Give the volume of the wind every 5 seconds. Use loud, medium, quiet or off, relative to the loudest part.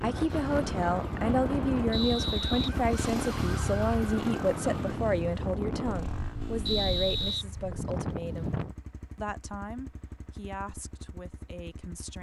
loud, loud, off.